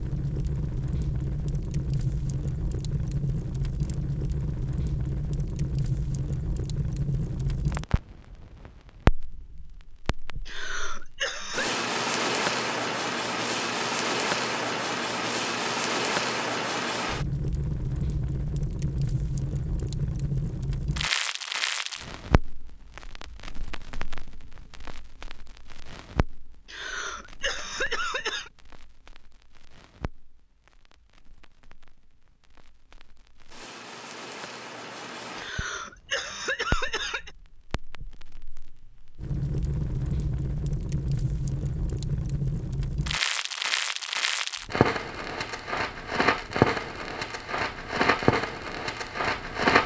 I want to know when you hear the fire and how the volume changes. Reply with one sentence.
The fire can be heard from 0.0 to 49.8 s, getting quieter then louder.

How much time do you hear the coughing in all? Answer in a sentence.
The coughing can be heard for 5 seconds in total.